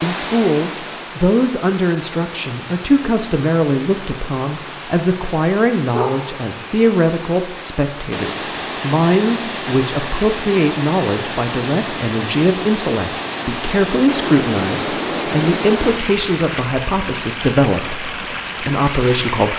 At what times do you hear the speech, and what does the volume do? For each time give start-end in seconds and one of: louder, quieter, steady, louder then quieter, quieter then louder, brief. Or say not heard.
0.0-19.5 steady.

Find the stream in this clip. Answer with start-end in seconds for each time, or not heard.
0.0-19.5.